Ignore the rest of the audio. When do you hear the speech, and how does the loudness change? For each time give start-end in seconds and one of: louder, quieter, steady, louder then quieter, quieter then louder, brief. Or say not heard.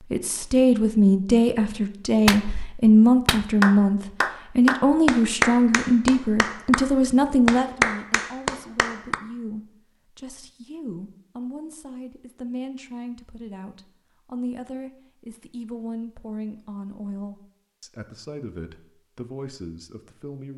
0.1-20.5 quieter.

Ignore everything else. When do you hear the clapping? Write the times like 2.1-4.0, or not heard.
2.2-9.2.